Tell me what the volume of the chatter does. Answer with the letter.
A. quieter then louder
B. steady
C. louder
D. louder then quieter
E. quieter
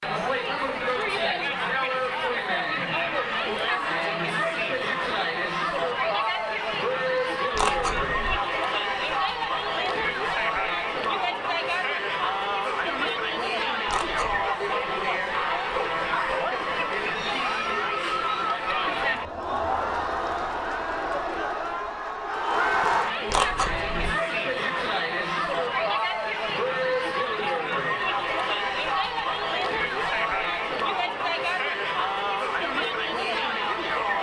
B.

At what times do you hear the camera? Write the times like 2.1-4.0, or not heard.
7.5-8.3, 13.8-14.5, 23.2-24.1.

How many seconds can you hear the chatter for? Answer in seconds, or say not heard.
34 s.